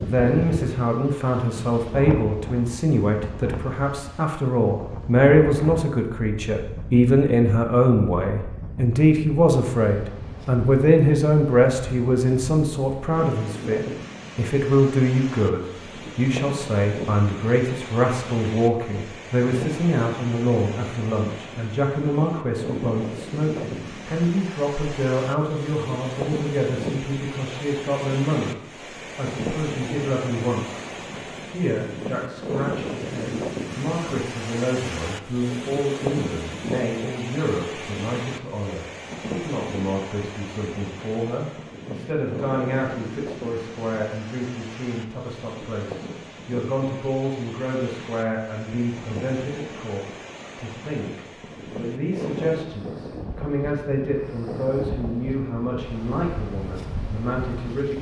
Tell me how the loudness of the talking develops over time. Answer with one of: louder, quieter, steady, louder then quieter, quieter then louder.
quieter.